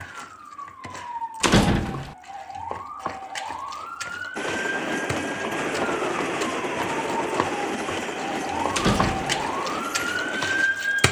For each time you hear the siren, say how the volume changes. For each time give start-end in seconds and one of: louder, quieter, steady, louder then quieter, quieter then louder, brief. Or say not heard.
0.0-11.0 louder.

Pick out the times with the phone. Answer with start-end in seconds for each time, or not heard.
not heard.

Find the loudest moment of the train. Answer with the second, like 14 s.
6 s.